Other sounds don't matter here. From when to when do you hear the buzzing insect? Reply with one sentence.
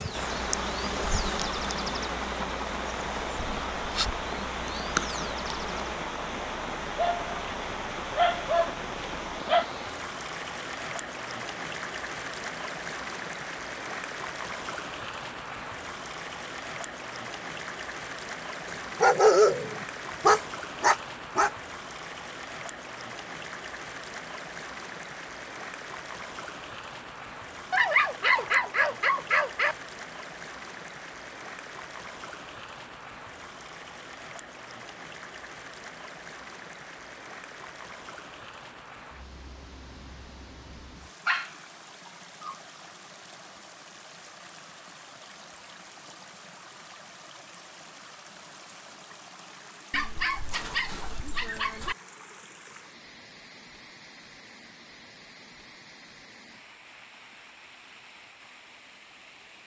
The buzzing insect can be heard from 0.0 to 6.0 s.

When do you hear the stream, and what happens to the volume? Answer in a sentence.
The stream can be heard from 0.0 to 59.6 s, getting quieter.